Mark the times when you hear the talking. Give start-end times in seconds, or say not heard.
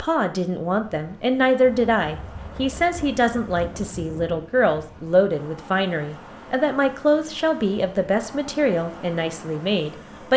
0.0-10.3.